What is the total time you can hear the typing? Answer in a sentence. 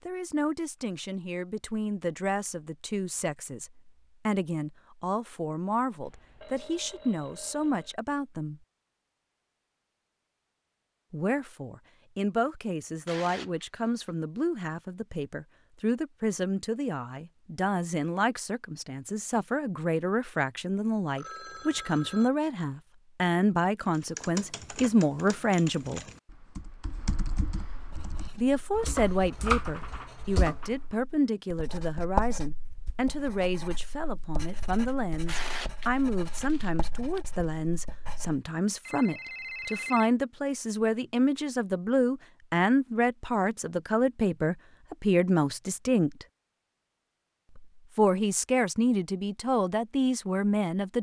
You can hear the typing for 7 seconds altogether.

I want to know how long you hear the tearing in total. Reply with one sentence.
You can hear the tearing for 3 seconds altogether.